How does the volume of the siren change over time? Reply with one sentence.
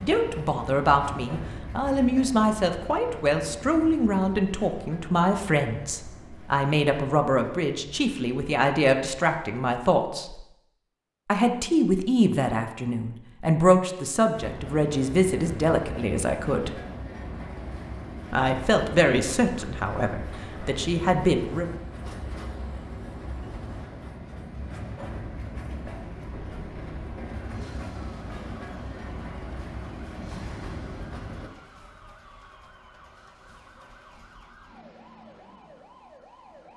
The loudness of the siren stays about the same.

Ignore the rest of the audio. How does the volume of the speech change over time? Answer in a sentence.
The volume of the speech stays about the same.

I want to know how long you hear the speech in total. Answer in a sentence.
You can hear the speech for 19 seconds altogether.